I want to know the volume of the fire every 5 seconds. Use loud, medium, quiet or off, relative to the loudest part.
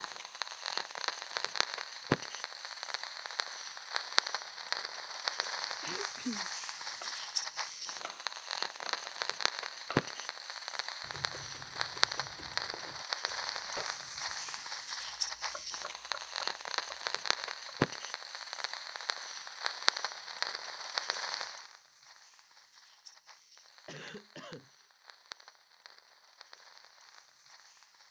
loud, loud, loud, loud, medium, quiet.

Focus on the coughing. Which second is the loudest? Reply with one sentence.
The volume of the coughing peaks at 6 seconds.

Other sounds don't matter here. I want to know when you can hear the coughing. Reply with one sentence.
The coughing can be heard from 5.8 to 6.5 s and from 23.9 to 24.7 s.